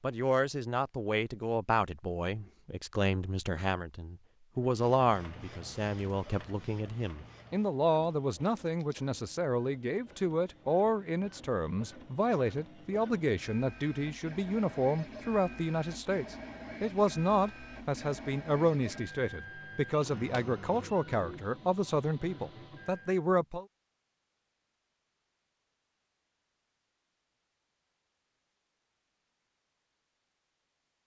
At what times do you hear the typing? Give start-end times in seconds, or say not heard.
not heard.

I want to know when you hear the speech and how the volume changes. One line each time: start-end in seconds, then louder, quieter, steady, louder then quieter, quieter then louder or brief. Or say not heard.
0.0-23.6 steady.